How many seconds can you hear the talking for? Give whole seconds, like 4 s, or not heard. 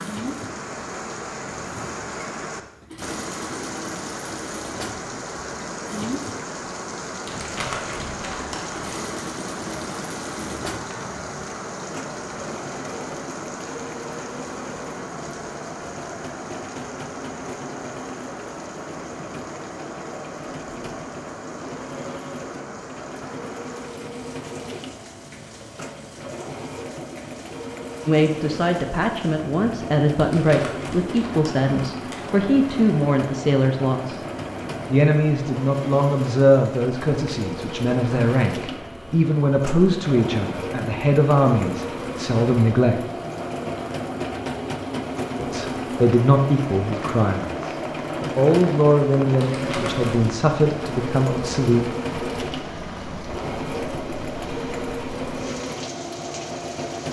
21 s.